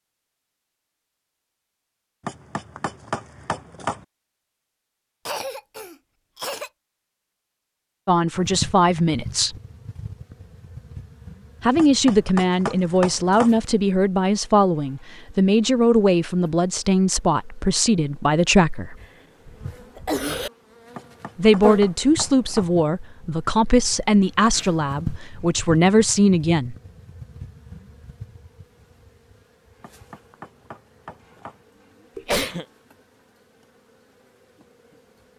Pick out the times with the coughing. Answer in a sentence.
You can hear the coughing from 5.2 to 6.7 s, from 19.0 to 20.5 s and from 32.1 to 32.6 s.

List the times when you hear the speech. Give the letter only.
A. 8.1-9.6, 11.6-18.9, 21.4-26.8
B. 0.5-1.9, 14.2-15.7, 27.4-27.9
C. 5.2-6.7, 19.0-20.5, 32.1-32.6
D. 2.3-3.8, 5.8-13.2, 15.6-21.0
A.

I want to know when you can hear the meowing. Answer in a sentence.
You can't hear the meowing here.